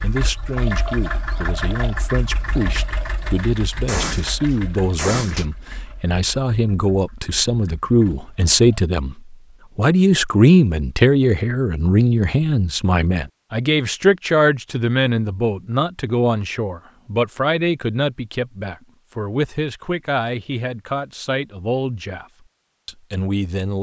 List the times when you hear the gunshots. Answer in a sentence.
The gunshots can be heard from 3.9 to 5.5 s.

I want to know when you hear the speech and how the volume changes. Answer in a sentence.
You can hear the speech from 0.0 to 22.2 s, getting louder then quieter; and briefly from 22.9 to 23.7 s.